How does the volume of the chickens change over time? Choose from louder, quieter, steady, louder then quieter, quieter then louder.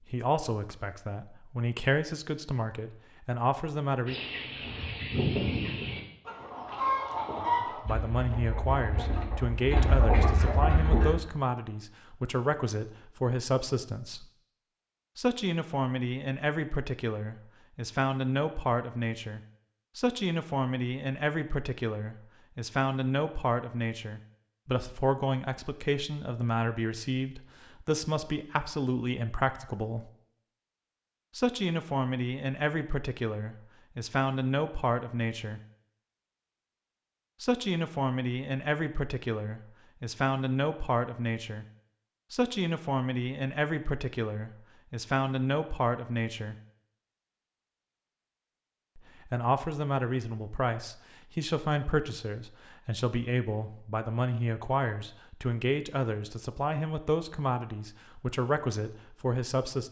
quieter then louder.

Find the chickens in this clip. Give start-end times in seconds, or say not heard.
4.0-11.2.